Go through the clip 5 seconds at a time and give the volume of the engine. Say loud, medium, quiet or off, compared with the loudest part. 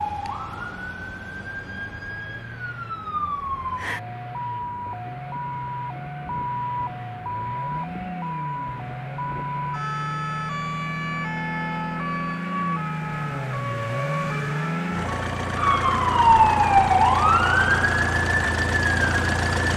quiet, medium, loud, loud.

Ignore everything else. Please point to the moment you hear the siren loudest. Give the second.
17 s.